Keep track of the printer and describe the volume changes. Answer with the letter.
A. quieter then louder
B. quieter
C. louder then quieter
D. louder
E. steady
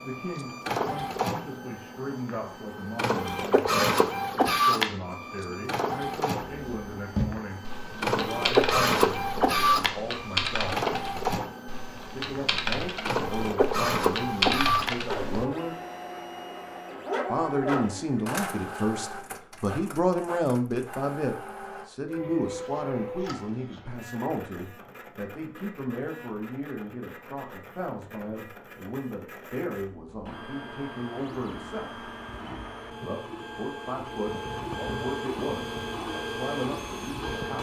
A.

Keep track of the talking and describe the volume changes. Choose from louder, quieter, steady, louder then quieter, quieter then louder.
louder then quieter.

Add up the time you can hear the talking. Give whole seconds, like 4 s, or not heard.
34 s.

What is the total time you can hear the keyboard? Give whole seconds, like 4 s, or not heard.
9 s.